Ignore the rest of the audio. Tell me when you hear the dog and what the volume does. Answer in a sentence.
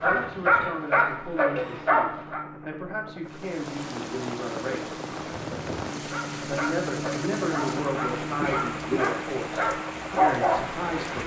The dog can be heard briefly from 0.0 to 2.5 s; and from 6.1 to 11.2 s, getting louder.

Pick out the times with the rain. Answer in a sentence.
You can hear the rain from 3.2 to 11.2 s.